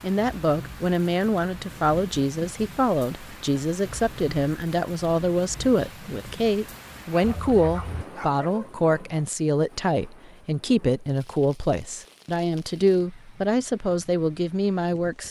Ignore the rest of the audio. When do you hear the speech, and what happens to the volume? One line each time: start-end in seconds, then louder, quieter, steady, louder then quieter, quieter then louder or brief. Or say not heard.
0.0-15.2 steady.